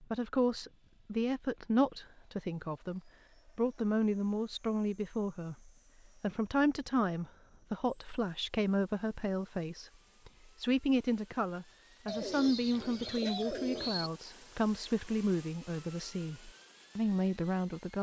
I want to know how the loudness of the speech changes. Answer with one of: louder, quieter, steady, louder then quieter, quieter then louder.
steady.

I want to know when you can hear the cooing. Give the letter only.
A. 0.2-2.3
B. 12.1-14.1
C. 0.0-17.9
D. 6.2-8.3
B.